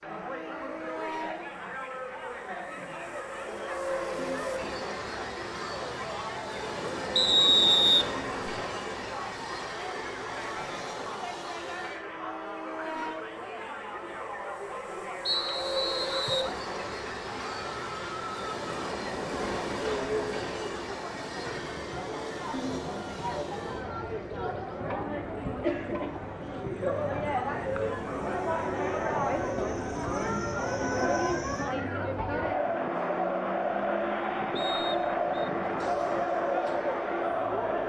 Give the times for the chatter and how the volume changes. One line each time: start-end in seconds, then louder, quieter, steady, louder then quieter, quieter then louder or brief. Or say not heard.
0.0-37.8 louder.